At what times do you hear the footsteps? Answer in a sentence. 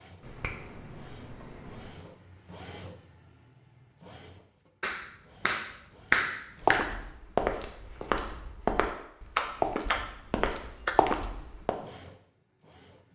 The footsteps can be heard from 6.6 to 11.8 s.